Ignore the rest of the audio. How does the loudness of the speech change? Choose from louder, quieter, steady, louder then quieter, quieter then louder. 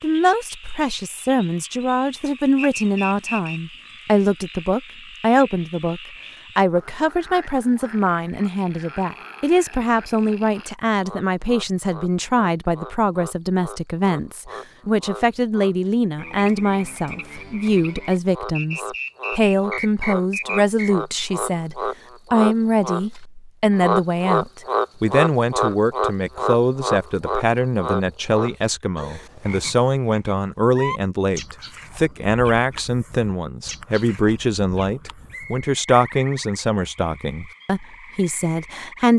steady.